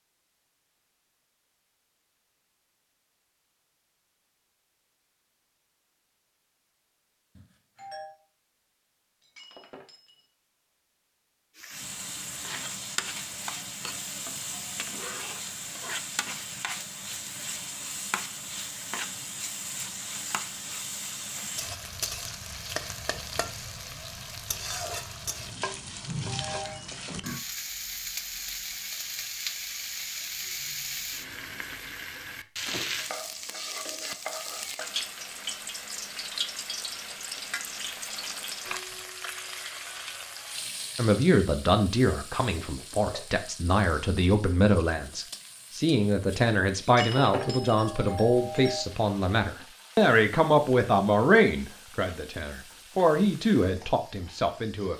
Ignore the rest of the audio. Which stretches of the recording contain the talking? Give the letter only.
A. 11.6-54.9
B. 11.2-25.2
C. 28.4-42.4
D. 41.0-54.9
D.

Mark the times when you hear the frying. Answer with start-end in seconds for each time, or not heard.
11.6-54.9.